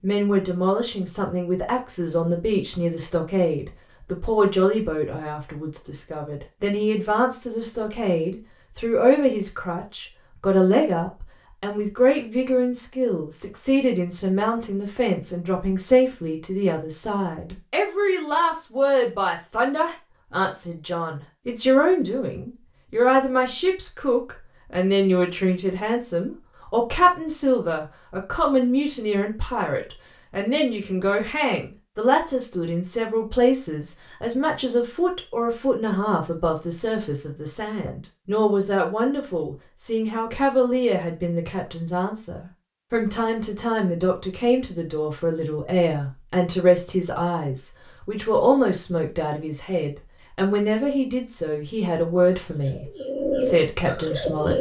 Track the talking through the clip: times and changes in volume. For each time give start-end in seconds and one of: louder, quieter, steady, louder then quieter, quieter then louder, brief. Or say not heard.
0.0-54.5 steady.